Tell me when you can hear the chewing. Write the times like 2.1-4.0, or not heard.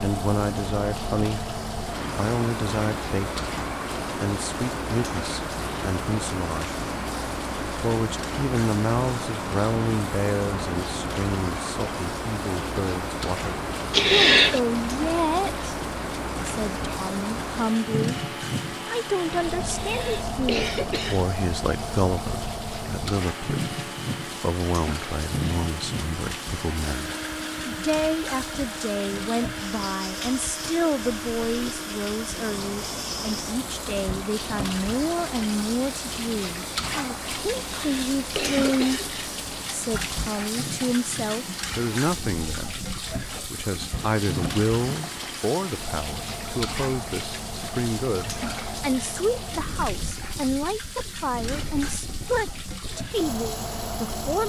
not heard.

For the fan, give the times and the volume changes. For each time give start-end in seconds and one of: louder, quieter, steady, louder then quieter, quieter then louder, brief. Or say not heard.
0.0-54.4 quieter.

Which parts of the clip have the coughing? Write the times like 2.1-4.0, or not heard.
13.9-14.6, 19.6-21.2, 37.6-39.1.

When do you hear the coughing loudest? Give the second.
14 s.